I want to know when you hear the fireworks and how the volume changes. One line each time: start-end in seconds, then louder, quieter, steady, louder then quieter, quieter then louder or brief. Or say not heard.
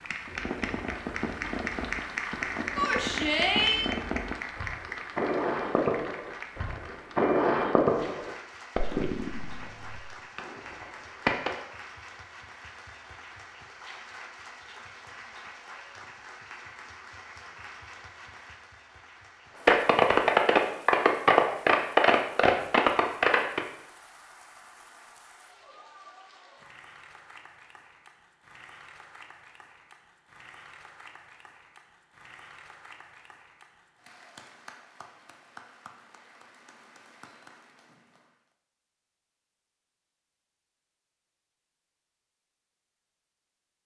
0.2-11.6 louder then quieter
19.6-23.6 steady.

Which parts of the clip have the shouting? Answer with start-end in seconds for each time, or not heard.
2.8-3.9.